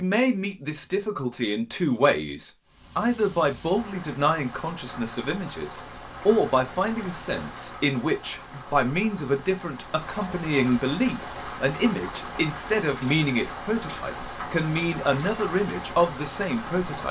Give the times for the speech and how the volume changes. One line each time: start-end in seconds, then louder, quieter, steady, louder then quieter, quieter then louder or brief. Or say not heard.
0.0-17.0 steady.